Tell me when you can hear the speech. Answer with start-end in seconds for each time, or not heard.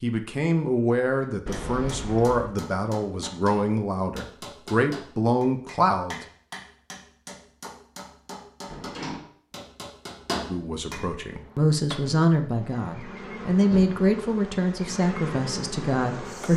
0.0-6.2, 10.4-16.5.